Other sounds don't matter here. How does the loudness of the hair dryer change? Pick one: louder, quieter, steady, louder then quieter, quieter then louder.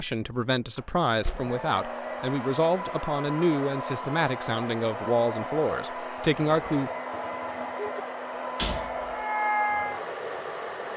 louder.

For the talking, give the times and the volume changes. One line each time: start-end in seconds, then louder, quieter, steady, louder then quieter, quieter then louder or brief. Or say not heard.
0.0-6.9 steady.